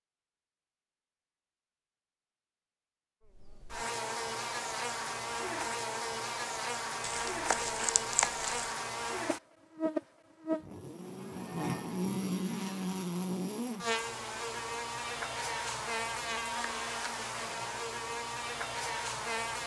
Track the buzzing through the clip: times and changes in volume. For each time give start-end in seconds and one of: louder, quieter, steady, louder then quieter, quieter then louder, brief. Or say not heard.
3.2-19.6 steady.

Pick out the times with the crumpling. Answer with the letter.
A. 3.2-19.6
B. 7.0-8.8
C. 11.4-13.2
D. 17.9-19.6
B.